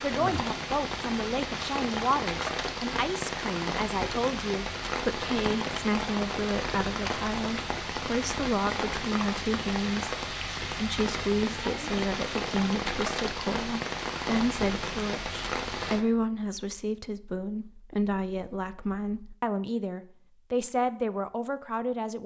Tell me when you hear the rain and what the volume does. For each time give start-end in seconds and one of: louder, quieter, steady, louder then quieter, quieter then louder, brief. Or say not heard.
0.0-16.1 steady.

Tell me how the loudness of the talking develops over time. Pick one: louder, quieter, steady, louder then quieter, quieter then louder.
steady.